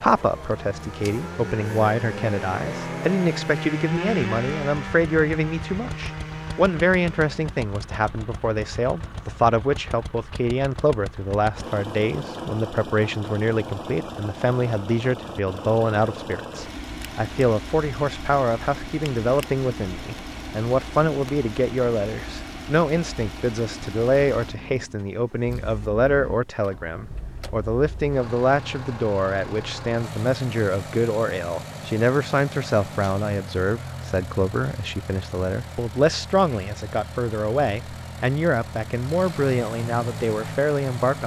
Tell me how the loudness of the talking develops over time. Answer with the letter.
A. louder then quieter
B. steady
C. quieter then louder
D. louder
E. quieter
B.